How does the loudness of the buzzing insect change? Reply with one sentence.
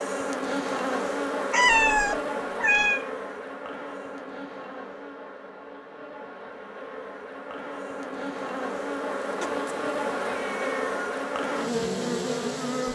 The volume of the buzzing insect goes down, then up.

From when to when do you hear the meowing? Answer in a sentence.
The meowing can be heard from 1.5 to 3.0 s and from 9.4 to 10.9 s.